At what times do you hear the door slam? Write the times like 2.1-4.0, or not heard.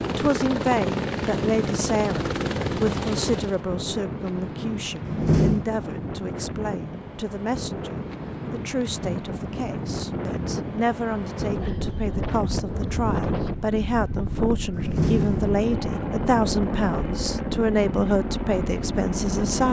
5.0-5.7, 14.7-15.6.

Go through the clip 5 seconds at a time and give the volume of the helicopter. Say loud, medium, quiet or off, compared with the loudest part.
loud, off, off, loud.